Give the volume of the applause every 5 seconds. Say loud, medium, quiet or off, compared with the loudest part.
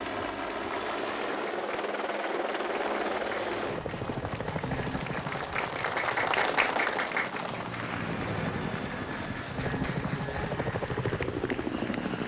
medium, loud, medium.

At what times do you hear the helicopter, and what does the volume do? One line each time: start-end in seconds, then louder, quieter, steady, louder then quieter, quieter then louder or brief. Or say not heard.
0.0-12.2 quieter then louder.